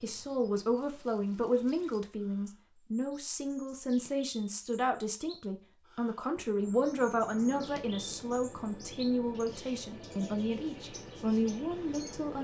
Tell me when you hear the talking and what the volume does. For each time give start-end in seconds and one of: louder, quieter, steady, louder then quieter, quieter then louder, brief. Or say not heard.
0.0-12.3 steady.